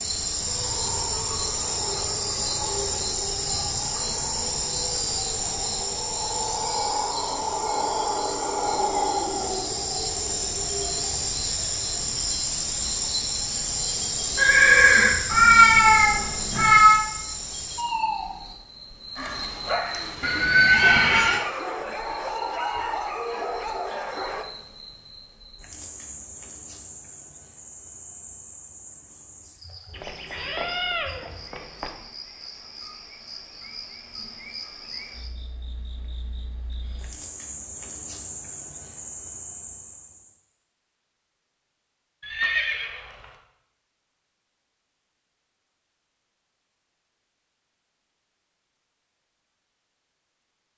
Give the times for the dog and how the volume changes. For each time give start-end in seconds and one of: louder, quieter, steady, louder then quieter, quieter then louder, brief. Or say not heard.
19.1-24.4 steady.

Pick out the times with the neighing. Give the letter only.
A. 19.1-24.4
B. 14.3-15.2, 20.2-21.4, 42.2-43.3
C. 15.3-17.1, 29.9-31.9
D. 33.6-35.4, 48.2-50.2
B.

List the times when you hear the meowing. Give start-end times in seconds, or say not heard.
15.3-17.1, 29.9-31.9.